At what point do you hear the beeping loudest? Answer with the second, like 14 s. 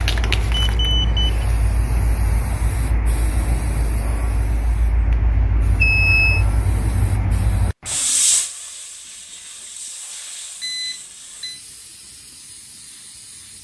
6 s.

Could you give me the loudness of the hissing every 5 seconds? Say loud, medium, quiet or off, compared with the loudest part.
loud, loud, quiet.